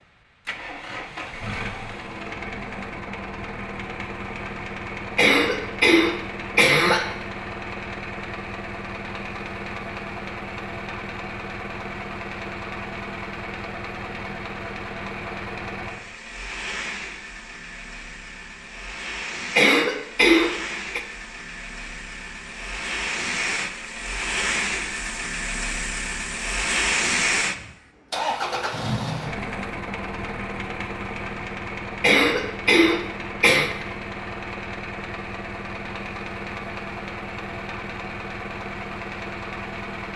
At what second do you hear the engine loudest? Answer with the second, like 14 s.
27 s.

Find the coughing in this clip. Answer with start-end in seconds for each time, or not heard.
5.2-7.1, 19.6-21.0, 32.0-33.7.